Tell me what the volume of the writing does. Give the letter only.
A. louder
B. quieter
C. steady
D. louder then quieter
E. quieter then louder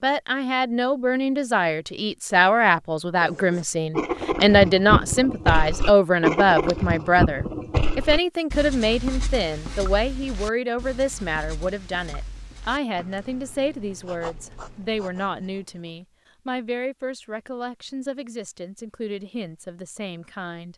B.